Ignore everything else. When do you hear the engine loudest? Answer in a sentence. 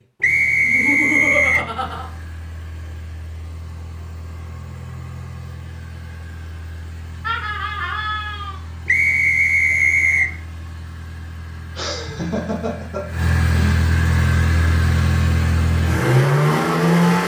The loudest moment of the engine is at 17 seconds.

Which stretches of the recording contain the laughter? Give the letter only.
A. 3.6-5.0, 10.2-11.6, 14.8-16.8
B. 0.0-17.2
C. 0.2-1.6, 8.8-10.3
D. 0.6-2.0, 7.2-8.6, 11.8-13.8
D.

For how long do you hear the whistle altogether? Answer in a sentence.
The whistle can be heard for 3 seconds in total.